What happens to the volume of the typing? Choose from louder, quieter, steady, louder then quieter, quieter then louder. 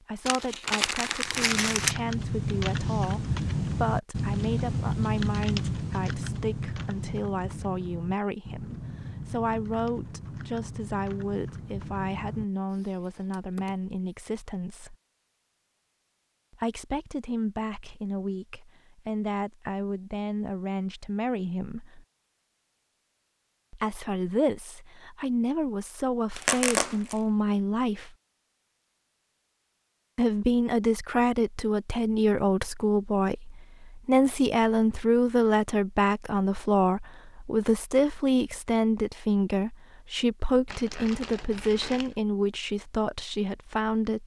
quieter.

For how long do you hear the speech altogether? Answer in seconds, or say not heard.
39 s.